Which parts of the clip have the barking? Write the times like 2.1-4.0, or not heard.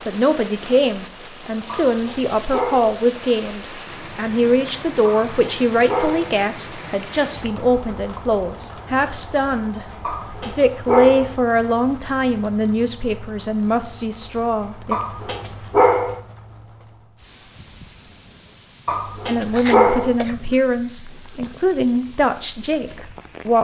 1.6-3.0, 5.0-6.3, 10.0-11.3, 14.9-16.2, 18.9-20.1.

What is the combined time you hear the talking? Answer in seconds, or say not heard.
19 s.